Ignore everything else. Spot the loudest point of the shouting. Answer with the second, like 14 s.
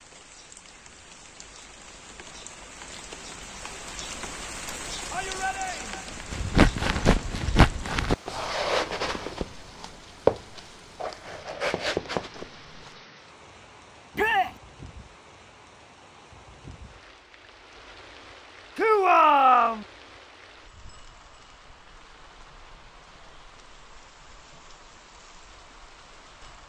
19 s.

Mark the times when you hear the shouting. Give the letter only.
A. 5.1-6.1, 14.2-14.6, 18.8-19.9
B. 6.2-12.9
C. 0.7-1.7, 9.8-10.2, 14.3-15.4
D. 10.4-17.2
A.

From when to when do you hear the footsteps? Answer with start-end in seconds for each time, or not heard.
6.2-12.9.